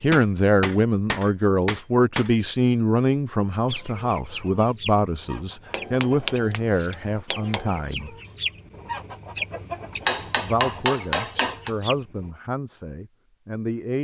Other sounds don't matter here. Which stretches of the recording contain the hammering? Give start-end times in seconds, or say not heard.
0.1-2.3, 5.7-7.7, 10.1-11.7.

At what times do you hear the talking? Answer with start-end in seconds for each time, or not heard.
0.0-8.2, 10.4-13.9.